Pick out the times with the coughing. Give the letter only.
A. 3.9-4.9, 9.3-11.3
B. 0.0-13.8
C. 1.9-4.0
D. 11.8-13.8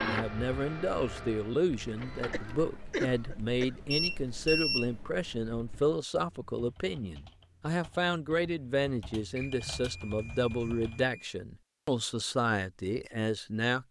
C.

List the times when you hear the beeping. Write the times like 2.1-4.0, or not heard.
3.9-4.9, 9.3-11.3.